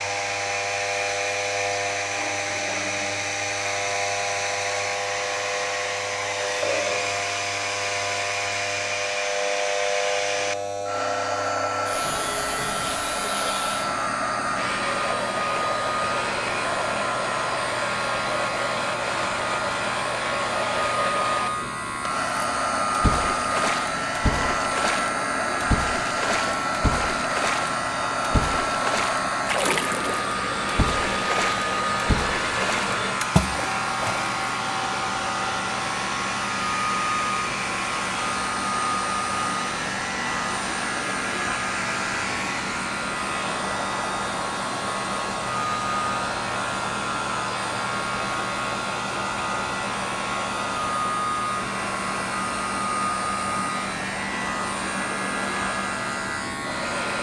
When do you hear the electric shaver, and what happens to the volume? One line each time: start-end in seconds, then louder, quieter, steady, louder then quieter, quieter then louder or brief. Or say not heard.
0.0-57.1 steady.